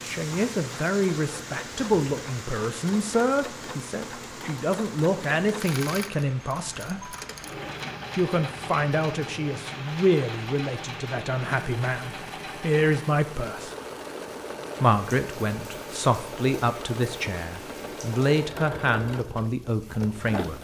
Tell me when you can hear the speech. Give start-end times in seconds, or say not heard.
0.0-7.2, 8.2-13.7, 14.8-20.6.